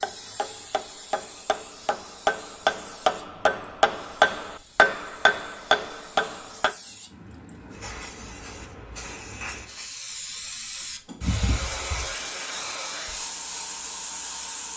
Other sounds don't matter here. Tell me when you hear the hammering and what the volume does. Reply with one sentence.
You can hear the hammering from 0.0 to 6.8 s, getting louder.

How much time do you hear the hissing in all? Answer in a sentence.
You can hear the hissing for 15 seconds altogether.